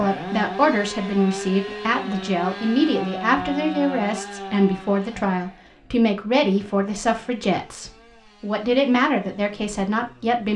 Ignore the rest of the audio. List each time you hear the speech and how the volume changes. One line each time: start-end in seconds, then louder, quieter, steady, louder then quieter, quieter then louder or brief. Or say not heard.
0.0-10.5 steady.